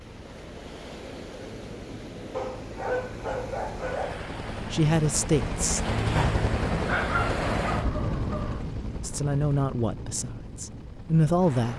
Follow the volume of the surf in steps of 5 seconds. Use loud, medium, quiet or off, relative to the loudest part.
medium, loud, medium.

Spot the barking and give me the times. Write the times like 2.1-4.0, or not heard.
2.3-4.2, 6.8-8.7.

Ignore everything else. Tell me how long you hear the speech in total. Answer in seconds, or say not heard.
4 s.